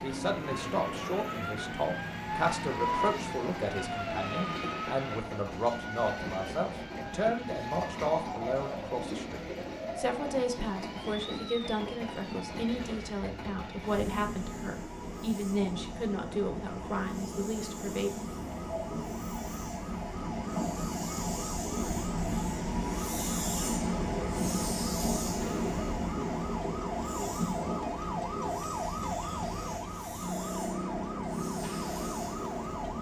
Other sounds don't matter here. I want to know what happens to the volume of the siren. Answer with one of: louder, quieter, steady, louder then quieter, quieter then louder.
quieter then louder.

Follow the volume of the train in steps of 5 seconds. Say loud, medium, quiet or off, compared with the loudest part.
medium, medium, medium, medium, loud, loud, medium.